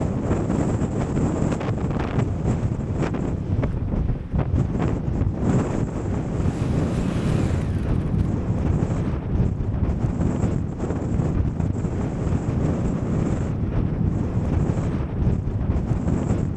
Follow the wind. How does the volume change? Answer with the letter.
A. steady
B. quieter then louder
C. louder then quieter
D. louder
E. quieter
A.